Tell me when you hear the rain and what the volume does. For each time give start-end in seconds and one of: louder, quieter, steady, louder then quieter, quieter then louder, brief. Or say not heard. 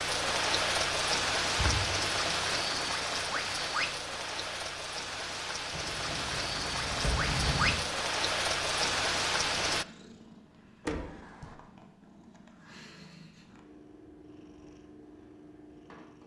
0.0-9.8 quieter then louder.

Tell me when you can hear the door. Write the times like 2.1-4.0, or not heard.
1.6-2.0, 5.7-7.8, 10.8-11.6.